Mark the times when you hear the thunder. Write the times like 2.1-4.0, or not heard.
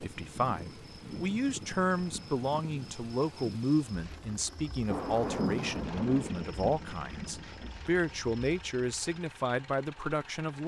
4.8-7.7.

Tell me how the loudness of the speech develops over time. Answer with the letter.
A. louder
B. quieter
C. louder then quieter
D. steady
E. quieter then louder
D.